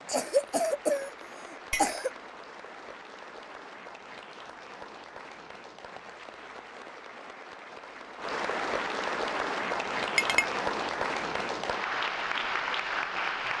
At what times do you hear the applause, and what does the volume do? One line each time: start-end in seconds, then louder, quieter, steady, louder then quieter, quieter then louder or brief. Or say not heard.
0.0-13.5 louder.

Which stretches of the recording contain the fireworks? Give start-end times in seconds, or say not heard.
not heard.